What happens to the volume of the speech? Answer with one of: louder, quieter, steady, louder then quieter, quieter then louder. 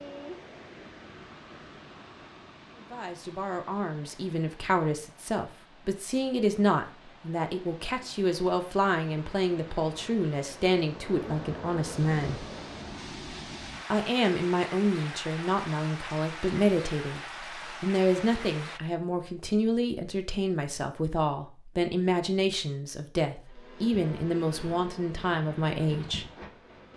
steady.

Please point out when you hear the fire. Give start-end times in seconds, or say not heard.
not heard.